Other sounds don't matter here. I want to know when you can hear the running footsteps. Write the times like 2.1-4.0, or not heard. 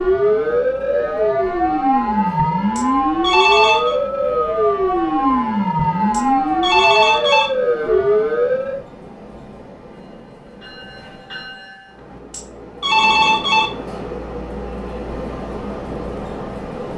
not heard.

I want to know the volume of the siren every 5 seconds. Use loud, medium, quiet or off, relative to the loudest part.
loud, loud, off, off.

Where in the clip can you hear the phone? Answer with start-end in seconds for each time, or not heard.
2.8-4.0, 6.1-7.5, 12.3-13.7.